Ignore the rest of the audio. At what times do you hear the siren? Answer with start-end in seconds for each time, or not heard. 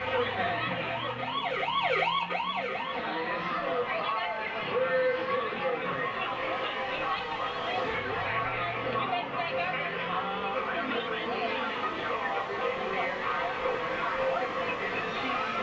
0.0-3.5.